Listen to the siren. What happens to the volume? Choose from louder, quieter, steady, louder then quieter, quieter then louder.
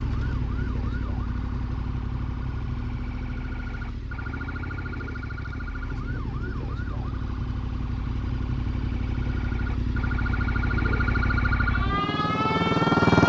louder.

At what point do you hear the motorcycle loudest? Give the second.
13 s.